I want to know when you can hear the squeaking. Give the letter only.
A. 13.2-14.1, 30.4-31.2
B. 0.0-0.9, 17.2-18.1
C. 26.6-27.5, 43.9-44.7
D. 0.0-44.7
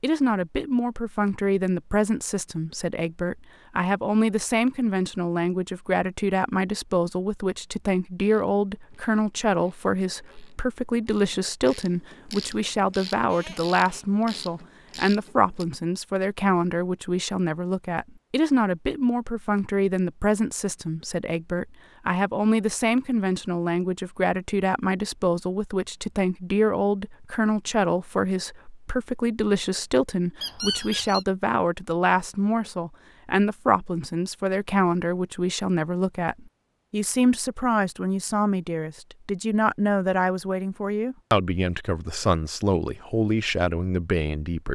A.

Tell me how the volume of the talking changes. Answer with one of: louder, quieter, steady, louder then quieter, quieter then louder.
steady.